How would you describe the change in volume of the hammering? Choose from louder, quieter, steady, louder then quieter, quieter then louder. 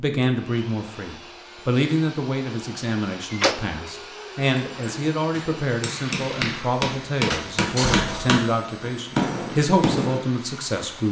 louder.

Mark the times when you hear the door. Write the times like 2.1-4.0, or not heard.
3.3-3.9, 7.3-8.4.